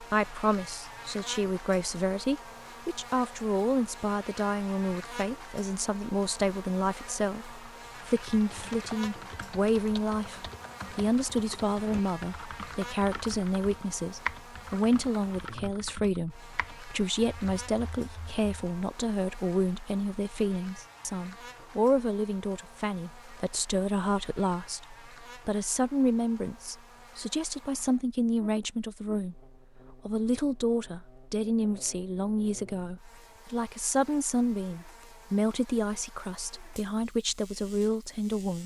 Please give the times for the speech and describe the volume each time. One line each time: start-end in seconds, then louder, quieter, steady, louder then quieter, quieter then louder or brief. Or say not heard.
0.0-38.6 steady.